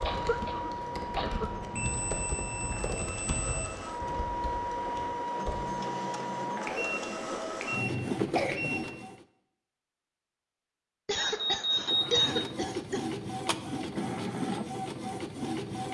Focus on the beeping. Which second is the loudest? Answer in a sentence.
The loudest moment of the beeping is at 12 seconds.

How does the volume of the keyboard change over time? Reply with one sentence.
The volume of the keyboard goes down.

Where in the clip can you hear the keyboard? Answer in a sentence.
You can hear the keyboard from 0.0 to 5.6 s.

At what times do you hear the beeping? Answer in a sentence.
You can hear the beeping from 1.7 to 3.7 s, from 6.7 to 8.9 s and from 11.2 to 12.4 s.